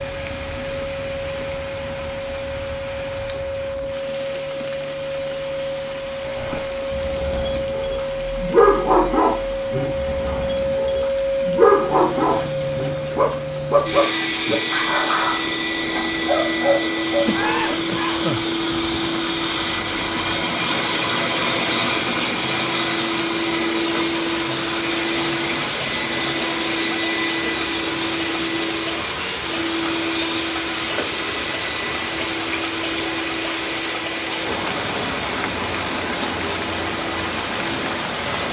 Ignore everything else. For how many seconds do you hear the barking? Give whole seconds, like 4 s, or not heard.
11 s.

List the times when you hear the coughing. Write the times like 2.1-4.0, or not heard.
17.2-18.5.